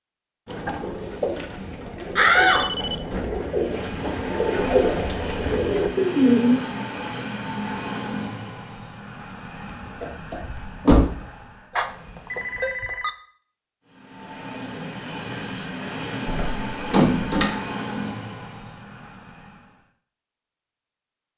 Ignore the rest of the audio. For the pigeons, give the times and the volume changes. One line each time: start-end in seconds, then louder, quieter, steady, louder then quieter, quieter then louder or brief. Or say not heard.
0.5-6.6 louder.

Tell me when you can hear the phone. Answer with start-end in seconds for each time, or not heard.
2.5-3.1, 11.8-13.1.